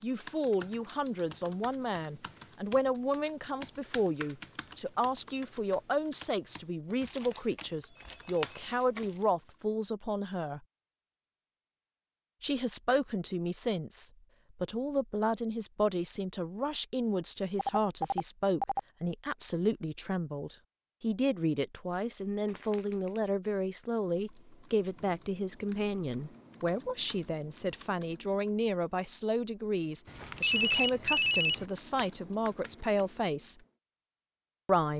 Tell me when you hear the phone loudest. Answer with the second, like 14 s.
31 s.